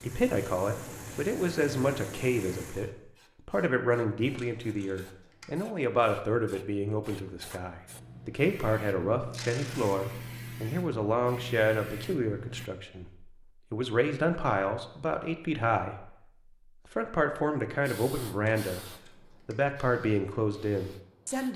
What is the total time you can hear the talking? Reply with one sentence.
You can hear the talking for 21 seconds altogether.